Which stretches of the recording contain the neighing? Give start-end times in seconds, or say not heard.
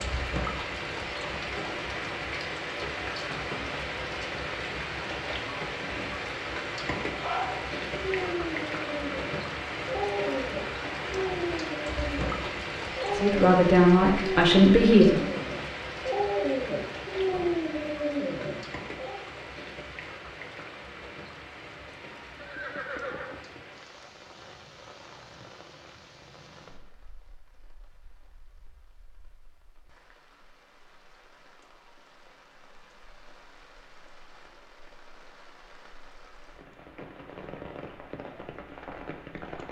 22.4-23.6.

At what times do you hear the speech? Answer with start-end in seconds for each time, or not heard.
13.2-15.2.